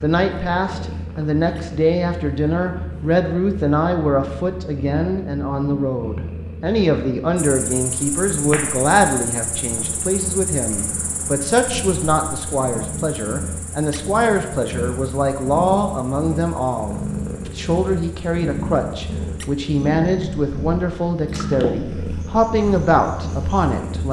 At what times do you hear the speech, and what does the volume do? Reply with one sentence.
You can hear the speech from 0.0 to 24.0 s, at a steady volume.